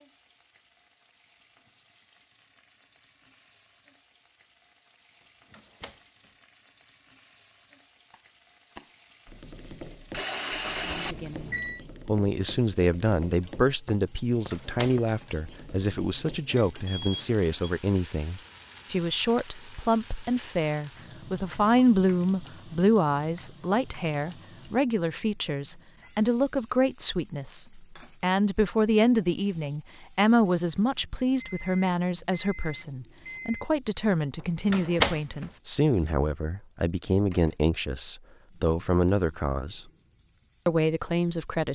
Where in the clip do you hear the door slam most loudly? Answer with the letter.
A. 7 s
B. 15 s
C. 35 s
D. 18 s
C.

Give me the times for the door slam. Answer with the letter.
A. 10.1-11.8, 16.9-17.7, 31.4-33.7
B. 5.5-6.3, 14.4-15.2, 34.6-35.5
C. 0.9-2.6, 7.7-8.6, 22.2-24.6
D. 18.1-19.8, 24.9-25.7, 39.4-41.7
B.